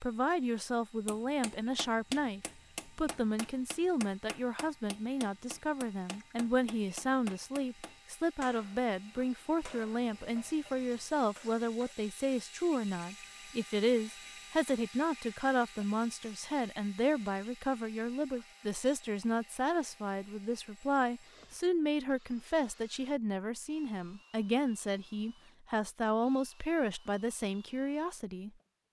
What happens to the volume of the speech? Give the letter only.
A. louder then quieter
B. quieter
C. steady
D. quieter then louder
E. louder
C.